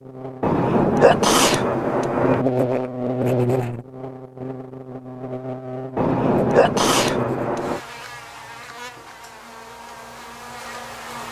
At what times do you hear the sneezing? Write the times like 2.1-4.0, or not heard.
0.4-2.5, 6.0-7.8.